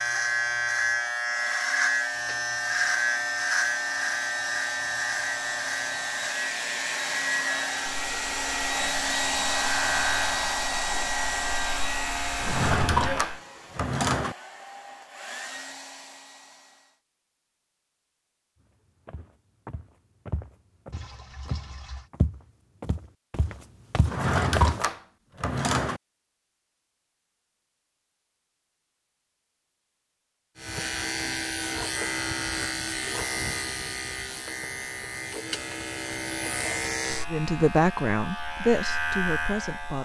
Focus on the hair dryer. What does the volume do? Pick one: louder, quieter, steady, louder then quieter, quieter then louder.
louder then quieter.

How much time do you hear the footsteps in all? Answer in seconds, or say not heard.
6 s.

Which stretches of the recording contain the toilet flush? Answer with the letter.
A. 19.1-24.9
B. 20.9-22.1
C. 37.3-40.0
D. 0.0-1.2
B.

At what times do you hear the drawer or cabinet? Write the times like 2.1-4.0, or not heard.
12.4-14.3, 24.1-26.0.